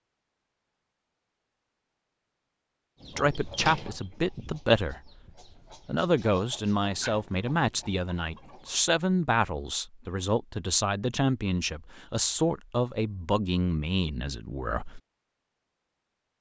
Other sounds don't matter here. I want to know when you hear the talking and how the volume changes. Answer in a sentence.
The talking can be heard briefly from 3.1 to 5.1 s; and from 5.8 to 15.0 s, at a steady volume.